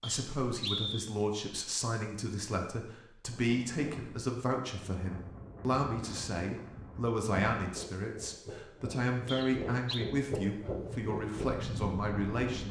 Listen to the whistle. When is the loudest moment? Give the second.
1 s.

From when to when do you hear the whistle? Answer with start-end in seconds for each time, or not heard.
0.0-1.1, 9.2-10.1.